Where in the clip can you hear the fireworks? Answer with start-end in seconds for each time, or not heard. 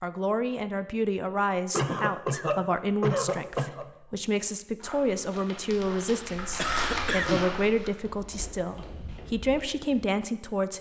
not heard.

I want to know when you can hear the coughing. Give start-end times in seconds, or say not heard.
1.7-3.9, 6.5-7.5.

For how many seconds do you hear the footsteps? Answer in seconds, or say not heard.
5 s.